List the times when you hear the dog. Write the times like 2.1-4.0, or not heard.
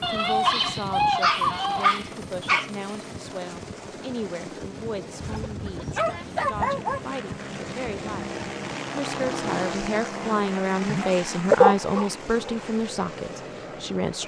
0.0-2.7, 5.2-7.0, 10.8-12.5.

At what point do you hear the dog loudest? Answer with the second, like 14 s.
12 s.